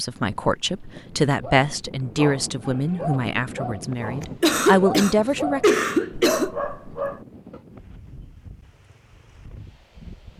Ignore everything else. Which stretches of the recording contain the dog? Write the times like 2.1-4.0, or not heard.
1.4-7.6.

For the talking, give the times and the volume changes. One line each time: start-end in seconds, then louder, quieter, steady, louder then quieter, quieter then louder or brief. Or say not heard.
0.0-5.8 quieter then louder.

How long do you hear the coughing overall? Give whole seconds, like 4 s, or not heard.
2 s.